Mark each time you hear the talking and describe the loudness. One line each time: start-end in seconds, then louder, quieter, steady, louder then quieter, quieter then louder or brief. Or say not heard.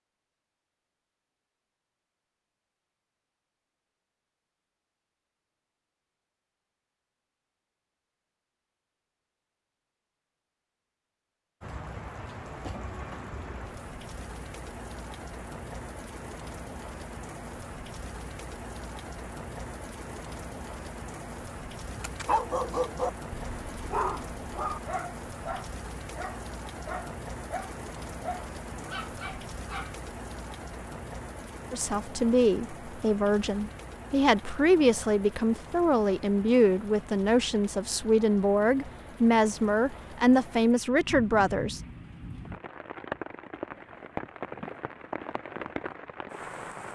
31.7-41.8 steady.